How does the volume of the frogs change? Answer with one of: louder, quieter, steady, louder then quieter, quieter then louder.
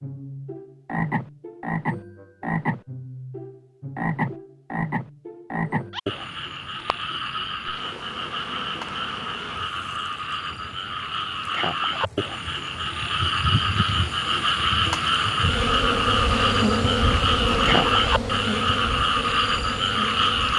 louder.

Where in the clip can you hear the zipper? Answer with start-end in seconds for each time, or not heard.
17.0-18.1.